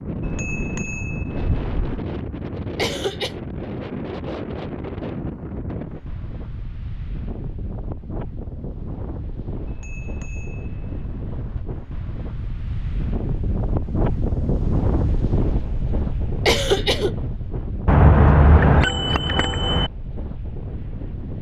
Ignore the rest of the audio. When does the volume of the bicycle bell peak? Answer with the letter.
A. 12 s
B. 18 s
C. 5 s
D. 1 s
B.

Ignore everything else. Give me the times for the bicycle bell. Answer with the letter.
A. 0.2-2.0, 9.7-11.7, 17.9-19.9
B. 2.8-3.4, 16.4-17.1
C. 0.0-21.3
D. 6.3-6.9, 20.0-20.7
A.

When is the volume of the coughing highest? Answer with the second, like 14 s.
17 s.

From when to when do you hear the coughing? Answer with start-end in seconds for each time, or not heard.
2.8-3.4, 16.4-17.1.